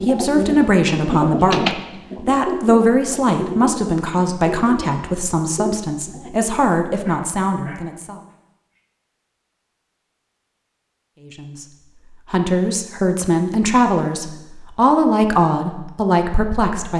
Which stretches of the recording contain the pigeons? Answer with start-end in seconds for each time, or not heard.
0.0-6.5.